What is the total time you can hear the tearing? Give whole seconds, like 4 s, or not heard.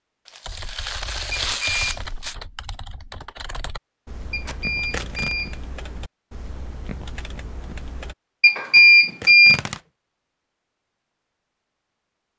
4 s.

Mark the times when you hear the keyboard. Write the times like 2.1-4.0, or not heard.
0.5-8.2.